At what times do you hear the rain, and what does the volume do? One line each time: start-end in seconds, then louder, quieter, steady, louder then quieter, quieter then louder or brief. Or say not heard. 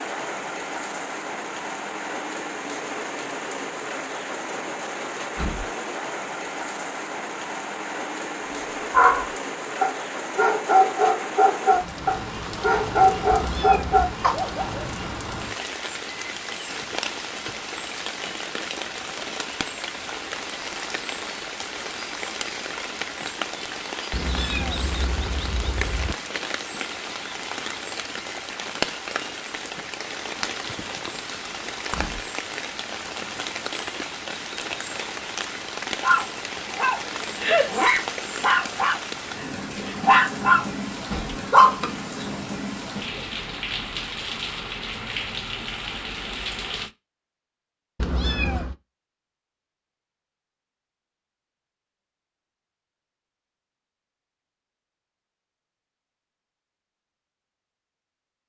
0.0-46.9 steady.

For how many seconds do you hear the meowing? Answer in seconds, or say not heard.
4 s.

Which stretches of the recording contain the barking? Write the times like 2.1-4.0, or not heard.
8.9-14.8, 36.0-42.2.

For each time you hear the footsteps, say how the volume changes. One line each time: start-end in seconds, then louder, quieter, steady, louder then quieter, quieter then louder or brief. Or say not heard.
not heard.